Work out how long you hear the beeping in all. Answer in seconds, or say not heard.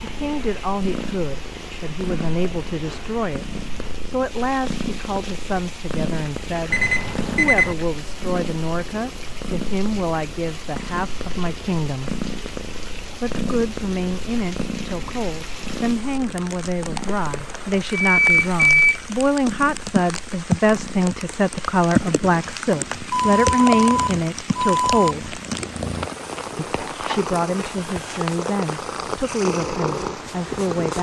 4 s.